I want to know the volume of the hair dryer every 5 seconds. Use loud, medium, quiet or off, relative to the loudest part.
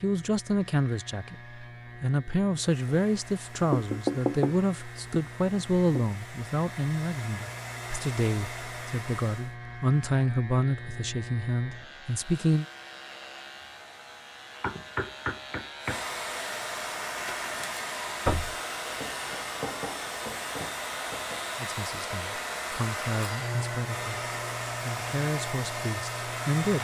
quiet, medium, quiet, loud, loud, loud.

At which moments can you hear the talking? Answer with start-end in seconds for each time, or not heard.
0.0-12.7, 21.6-26.7.